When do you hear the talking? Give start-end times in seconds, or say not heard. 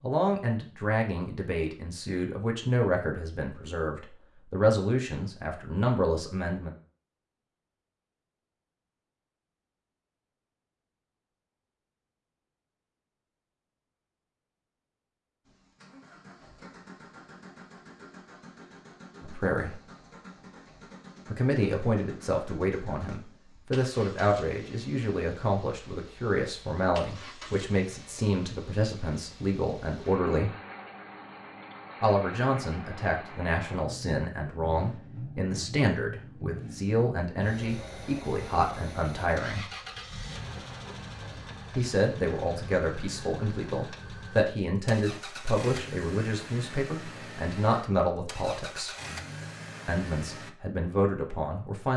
0.0-6.7, 19.2-19.8, 21.3-30.5, 32.0-39.6, 41.8-49.0, 49.9-51.9.